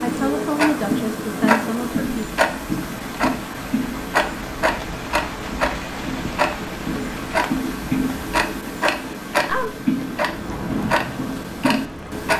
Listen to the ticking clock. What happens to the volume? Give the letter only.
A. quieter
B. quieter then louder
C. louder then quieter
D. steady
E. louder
D.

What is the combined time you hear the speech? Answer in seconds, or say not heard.
2 s.